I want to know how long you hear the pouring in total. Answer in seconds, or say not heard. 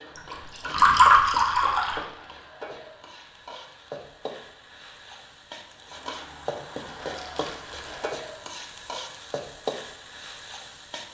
2 s.